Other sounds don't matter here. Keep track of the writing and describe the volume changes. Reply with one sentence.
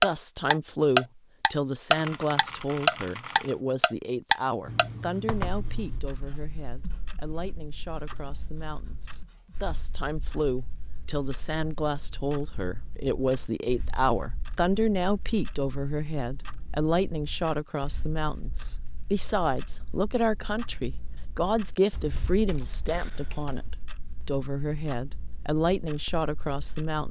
The loudness of the writing goes down.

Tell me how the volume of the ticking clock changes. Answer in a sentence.
The volume of the ticking clock goes down.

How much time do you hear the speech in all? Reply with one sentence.
The speech can be heard for 27 seconds in total.